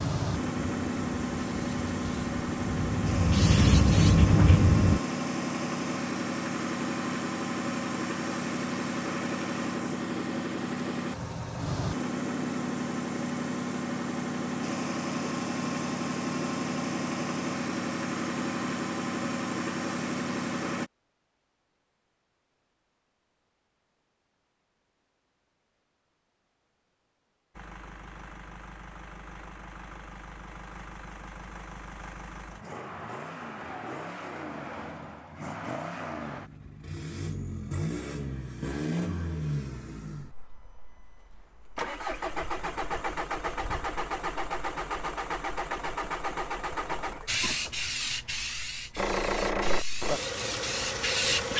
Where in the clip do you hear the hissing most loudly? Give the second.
4 s.